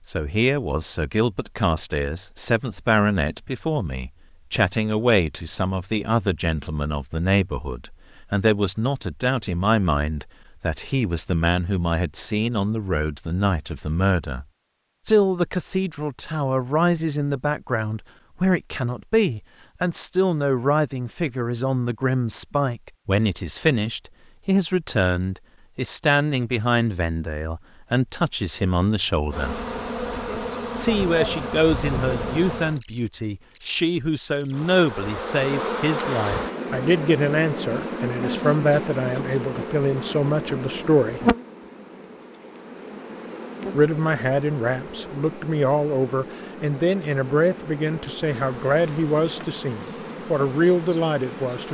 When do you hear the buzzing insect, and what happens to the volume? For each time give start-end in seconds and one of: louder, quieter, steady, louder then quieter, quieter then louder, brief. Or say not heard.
29.3-51.6 quieter.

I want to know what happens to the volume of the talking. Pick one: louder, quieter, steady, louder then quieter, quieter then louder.
steady.